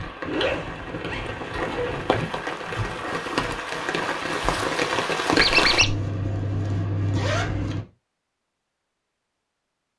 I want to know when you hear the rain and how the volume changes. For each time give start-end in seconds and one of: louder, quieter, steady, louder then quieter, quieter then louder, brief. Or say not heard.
0.0-5.8 louder.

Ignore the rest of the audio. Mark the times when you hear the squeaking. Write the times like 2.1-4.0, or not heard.
5.3-6.0.